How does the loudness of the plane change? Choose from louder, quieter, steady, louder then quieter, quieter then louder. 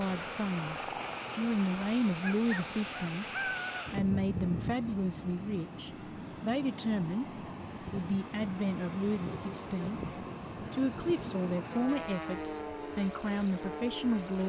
steady.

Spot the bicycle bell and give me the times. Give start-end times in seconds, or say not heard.
not heard.